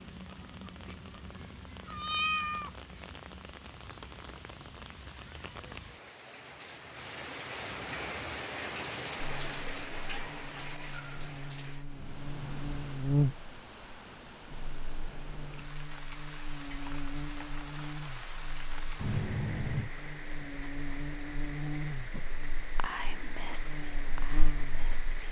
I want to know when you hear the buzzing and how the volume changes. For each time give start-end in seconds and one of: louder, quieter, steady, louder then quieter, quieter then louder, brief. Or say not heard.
9.2-25.1 louder then quieter.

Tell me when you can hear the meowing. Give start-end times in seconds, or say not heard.
1.9-3.0, 18.9-19.9.